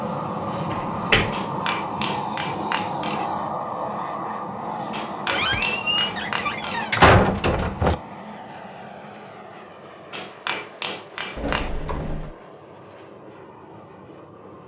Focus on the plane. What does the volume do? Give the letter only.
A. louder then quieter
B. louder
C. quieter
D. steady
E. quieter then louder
C.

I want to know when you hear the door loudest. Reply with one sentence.
The loudest moment of the door is at 7 seconds.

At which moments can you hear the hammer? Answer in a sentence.
You can hear the hammer from 1.3 to 3.3 s, from 4.9 to 6.9 s and from 10.1 to 11.7 s.